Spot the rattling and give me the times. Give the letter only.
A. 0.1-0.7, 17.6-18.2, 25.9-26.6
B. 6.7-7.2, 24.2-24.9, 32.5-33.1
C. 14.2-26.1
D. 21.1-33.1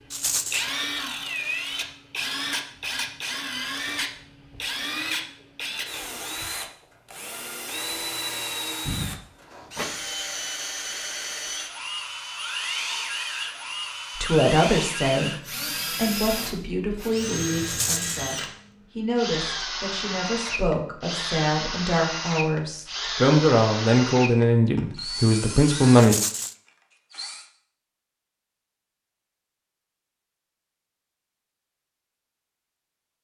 A.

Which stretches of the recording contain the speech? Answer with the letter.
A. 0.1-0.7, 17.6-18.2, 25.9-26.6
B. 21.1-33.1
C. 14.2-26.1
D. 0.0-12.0
C.